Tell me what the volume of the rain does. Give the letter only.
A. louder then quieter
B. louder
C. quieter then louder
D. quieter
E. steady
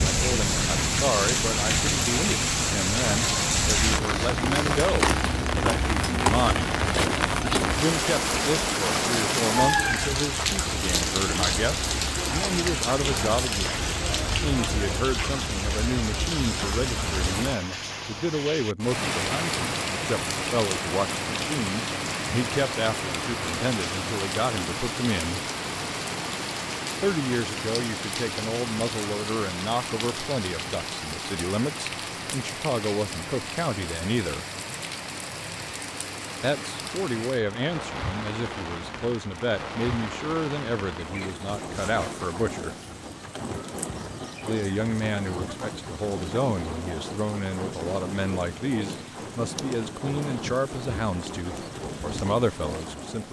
D.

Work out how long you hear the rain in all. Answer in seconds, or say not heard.
53 s.